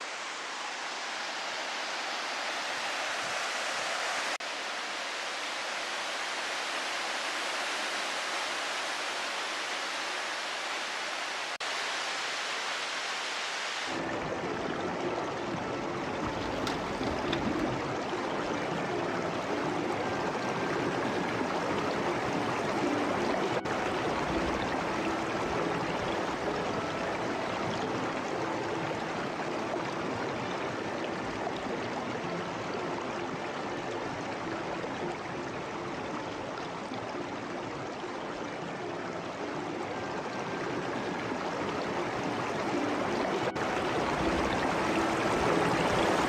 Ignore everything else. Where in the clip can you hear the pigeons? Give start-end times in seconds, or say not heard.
16.2-17.9.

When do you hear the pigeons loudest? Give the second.
17 s.